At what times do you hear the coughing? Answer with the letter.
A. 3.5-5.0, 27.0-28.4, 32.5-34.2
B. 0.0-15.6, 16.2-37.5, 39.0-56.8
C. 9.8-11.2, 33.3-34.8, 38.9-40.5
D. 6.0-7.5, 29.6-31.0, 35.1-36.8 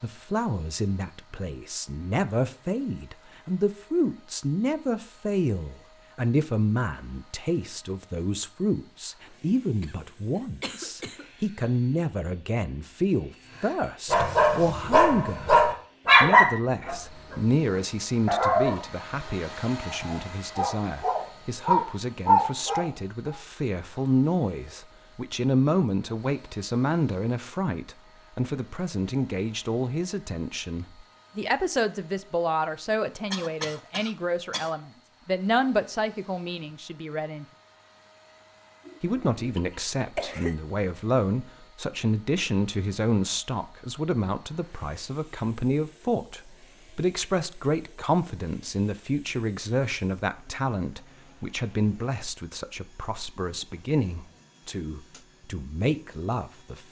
C.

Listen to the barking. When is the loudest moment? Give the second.
16 s.